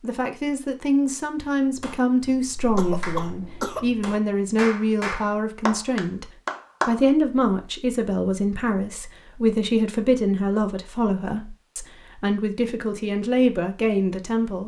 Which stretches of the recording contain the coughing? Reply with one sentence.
You can hear the coughing from 2.8 to 3.9 s.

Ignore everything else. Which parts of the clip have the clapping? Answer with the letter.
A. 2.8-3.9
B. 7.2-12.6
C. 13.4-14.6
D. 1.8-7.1
D.